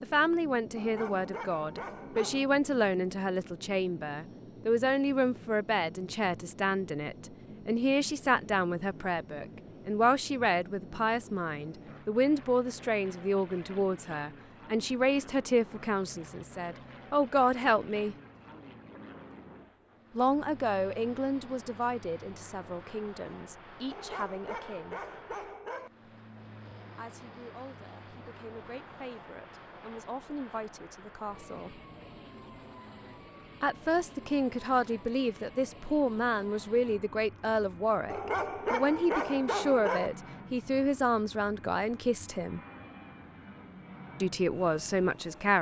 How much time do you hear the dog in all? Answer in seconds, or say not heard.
6 s.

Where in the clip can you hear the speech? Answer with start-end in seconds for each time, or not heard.
0.0-18.1, 20.1-25.1, 26.9-31.8, 33.6-42.6, 44.2-45.5.